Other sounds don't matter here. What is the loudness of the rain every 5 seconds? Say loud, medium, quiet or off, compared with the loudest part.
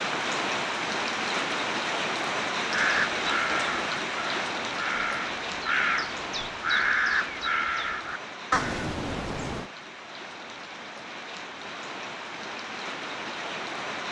loud, medium, medium.